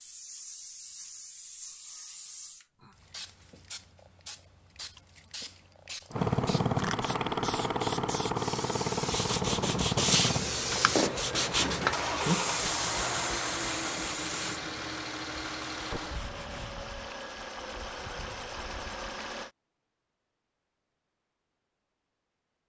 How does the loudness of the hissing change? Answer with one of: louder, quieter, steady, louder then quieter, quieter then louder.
louder.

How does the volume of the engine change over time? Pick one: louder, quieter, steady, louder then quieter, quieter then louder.
quieter.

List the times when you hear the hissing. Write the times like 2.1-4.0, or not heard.
0.0-14.4.